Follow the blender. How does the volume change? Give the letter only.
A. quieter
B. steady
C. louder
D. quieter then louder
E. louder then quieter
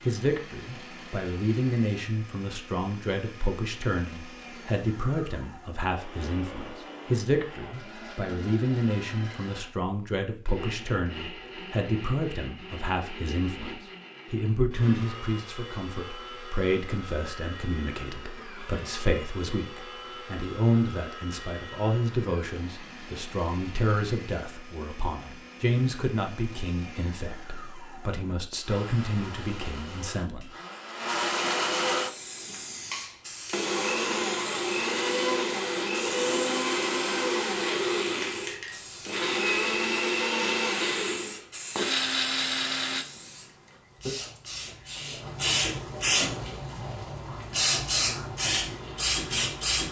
C.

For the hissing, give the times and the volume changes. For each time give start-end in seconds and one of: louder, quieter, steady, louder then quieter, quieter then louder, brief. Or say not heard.
31.9-49.8 louder.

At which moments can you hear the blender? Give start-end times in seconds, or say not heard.
0.0-43.0.